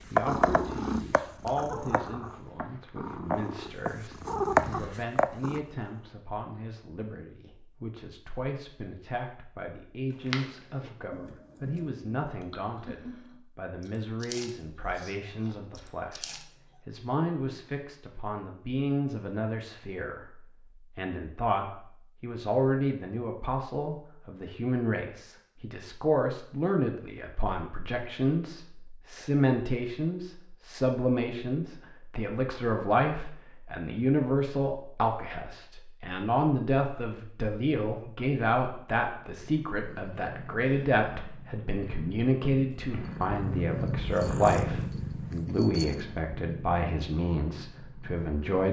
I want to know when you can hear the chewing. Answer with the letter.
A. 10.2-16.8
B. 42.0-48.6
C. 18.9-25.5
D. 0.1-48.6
A.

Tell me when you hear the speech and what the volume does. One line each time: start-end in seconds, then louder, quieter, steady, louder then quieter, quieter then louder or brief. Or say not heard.
0.1-48.6 louder.